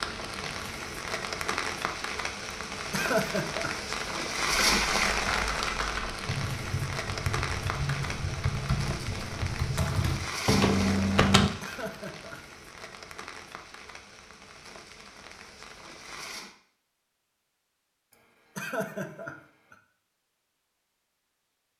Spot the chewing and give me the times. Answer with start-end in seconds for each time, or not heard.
not heard.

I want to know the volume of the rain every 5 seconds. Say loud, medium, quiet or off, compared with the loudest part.
loud, loud, medium, quiet, off.